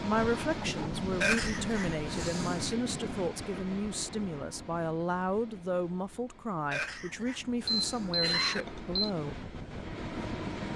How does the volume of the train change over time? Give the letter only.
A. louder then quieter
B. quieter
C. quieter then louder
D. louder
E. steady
C.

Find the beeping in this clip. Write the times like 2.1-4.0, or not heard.
7.7-9.1.